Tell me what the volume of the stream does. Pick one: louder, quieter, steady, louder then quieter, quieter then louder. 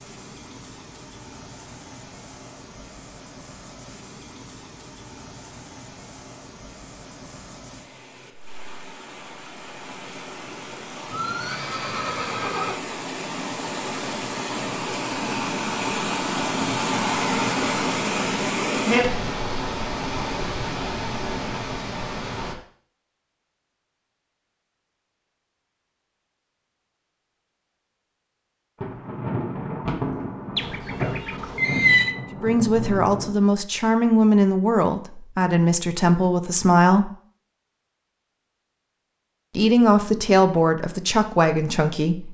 louder.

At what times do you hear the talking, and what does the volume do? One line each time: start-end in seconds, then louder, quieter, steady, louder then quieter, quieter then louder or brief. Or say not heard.
32.3-37.1 steady
39.5-42.2 brief.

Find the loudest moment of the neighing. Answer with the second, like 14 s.
32 s.